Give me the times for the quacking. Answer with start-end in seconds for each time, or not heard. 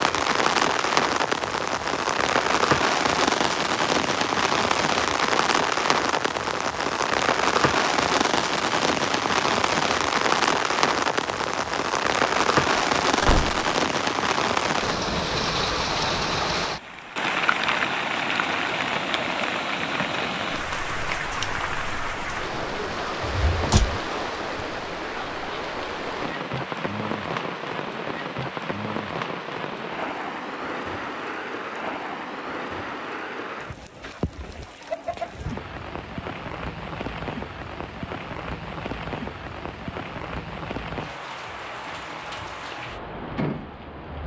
not heard.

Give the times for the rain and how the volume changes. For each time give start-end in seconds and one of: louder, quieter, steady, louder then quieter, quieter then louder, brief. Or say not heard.
0.0-44.2 quieter.